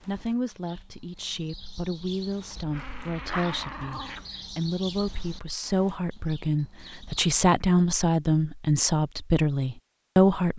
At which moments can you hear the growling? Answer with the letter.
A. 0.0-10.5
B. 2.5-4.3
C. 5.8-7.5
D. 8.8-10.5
B.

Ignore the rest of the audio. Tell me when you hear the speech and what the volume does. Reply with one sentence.
The speech can be heard from 0.0 to 10.5 s, getting louder.